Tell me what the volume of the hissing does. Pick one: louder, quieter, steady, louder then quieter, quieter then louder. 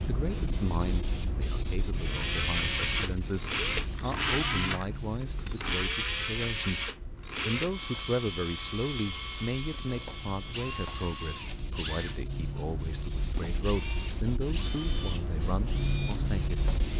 quieter then louder.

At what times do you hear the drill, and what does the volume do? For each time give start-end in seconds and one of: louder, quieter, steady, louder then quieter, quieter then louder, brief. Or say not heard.
1.9-16.9 quieter.